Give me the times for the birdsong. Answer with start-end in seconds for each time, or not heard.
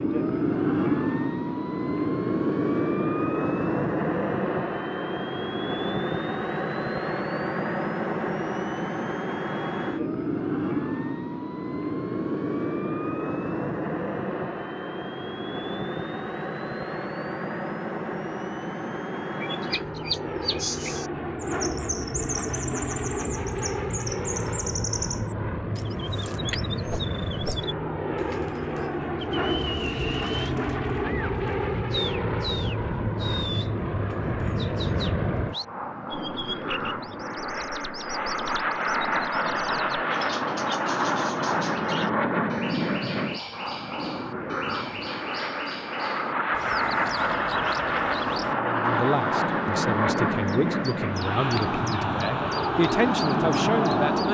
19.4-54.3.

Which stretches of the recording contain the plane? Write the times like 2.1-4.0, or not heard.
0.0-54.3.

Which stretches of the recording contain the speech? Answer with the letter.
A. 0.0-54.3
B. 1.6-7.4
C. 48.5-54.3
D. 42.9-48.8
C.